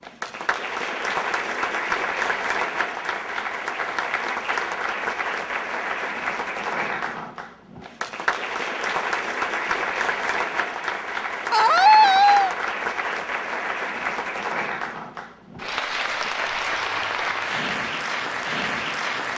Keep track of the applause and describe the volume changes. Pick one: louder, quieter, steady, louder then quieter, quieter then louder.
steady.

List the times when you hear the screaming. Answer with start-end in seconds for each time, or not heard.
11.5-12.6.